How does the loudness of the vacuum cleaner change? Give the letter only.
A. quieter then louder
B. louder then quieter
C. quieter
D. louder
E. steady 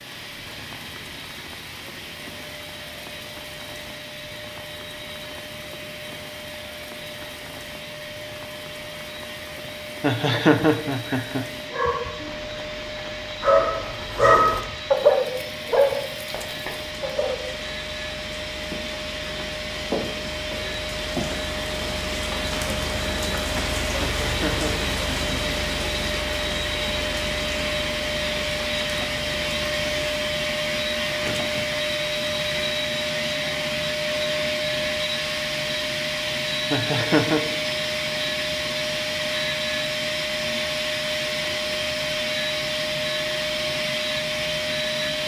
D.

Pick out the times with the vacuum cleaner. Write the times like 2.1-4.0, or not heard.
0.0-45.2.